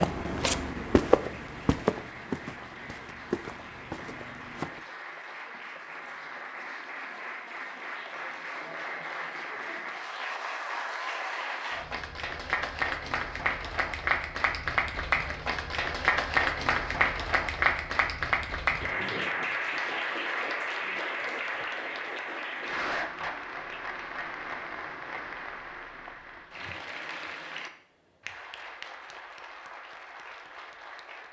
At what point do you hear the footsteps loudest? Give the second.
1 s.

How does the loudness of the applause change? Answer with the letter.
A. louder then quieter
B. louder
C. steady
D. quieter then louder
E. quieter
A.